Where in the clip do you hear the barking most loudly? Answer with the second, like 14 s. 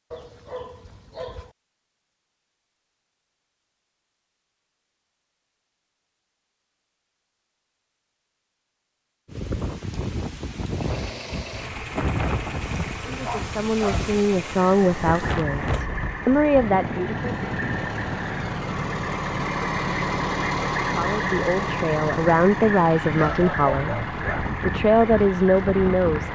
24 s.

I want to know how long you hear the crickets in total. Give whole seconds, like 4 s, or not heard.
not heard.